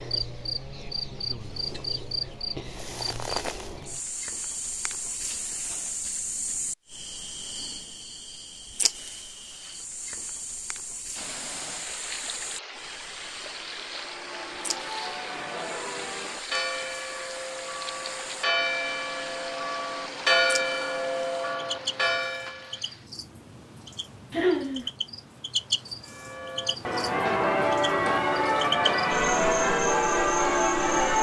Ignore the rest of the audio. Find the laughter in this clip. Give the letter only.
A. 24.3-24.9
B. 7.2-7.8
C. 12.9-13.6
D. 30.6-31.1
A.